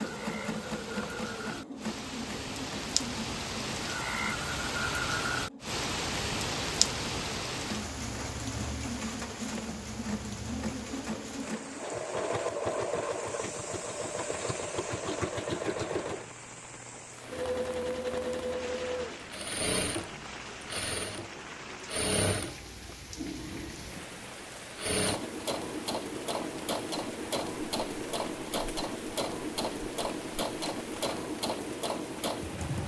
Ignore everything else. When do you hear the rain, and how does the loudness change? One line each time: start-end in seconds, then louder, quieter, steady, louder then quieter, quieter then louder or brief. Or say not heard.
0.0-32.8 quieter.